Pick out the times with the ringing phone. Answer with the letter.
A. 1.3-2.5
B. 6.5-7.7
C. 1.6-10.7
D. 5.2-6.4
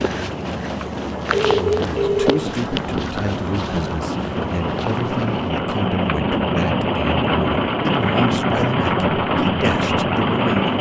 A.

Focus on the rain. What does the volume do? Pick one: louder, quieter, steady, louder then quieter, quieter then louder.
louder.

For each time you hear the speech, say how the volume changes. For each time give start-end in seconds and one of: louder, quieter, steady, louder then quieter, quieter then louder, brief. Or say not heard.
1.6-10.7 steady.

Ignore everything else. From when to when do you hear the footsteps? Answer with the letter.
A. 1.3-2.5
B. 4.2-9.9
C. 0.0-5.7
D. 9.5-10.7
C.